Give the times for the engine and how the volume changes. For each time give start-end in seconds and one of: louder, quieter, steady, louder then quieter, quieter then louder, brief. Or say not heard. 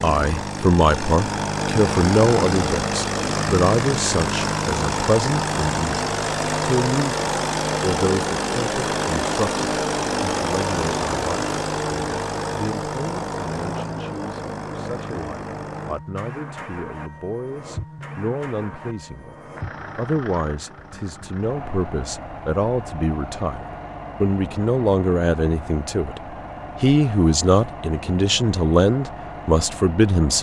0.0-30.3 quieter.